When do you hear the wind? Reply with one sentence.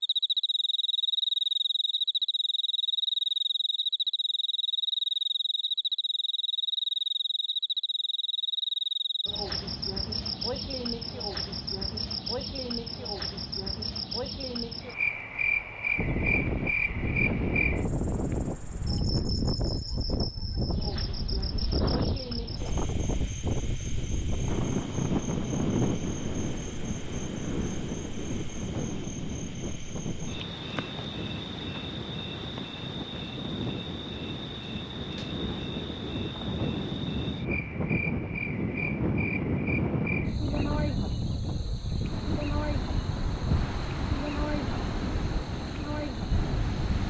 The wind can be heard from 15.9 to 47.0 s.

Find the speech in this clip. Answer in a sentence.
The speech can't be heard in this clip.